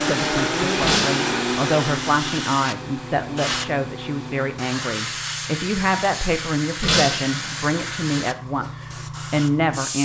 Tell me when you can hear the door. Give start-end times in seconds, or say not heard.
not heard.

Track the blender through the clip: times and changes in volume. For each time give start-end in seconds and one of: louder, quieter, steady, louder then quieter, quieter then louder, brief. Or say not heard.
0.0-4.8 quieter.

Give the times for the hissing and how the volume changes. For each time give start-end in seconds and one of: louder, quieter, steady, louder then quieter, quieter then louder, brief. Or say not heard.
0.0-10.0 steady.